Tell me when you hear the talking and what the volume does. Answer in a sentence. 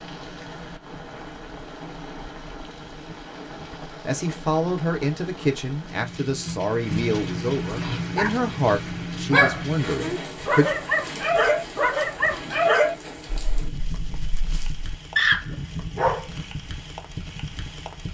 The talking can be heard from 3.6 to 10.7 s, at a steady volume.